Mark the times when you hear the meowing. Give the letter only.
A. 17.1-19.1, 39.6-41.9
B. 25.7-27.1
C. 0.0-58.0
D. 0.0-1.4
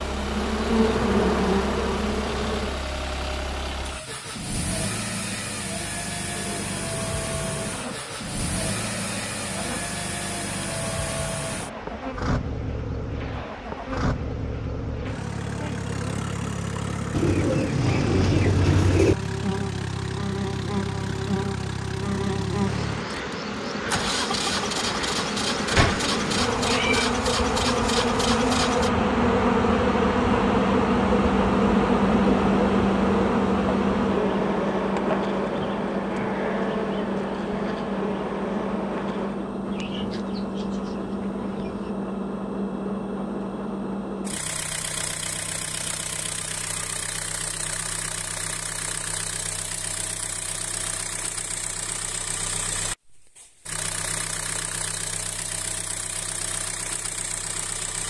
B.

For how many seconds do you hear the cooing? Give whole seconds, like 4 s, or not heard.
4 s.